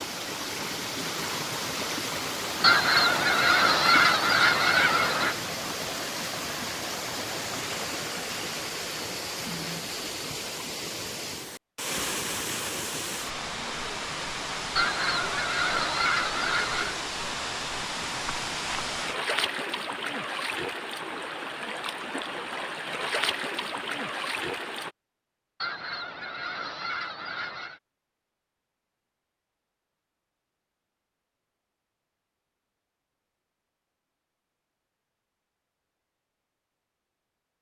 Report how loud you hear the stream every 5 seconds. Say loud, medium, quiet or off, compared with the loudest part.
loud, loud, loud, loud, loud, off, off, off.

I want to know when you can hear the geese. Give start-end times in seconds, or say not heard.
2.6-5.3, 14.8-16.9, 25.6-27.8.